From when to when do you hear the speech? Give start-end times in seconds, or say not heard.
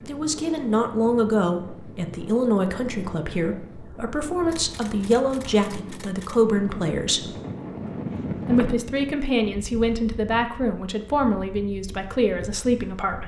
0.1-7.3, 8.4-13.2.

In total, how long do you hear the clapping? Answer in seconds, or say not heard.
not heard.